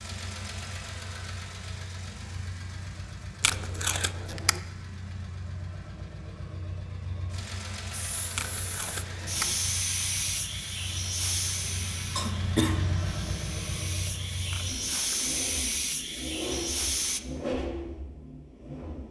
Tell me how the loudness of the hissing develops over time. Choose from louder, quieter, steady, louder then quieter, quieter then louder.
quieter then louder.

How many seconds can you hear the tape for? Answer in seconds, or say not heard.
3 s.